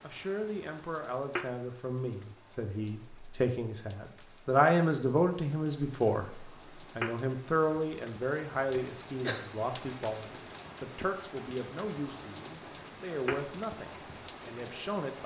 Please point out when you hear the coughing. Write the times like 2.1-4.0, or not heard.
8.7-9.4.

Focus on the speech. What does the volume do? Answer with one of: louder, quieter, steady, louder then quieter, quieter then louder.
louder then quieter.